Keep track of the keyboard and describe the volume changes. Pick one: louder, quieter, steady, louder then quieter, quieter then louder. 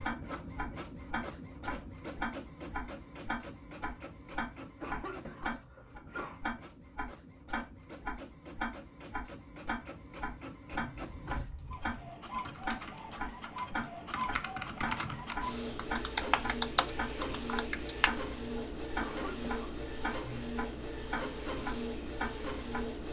louder.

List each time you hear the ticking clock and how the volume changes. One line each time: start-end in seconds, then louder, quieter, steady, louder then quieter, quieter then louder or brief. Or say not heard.
0.0-22.9 steady.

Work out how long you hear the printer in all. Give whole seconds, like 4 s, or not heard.
23 s.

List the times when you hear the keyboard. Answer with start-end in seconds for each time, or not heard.
10.7-18.1.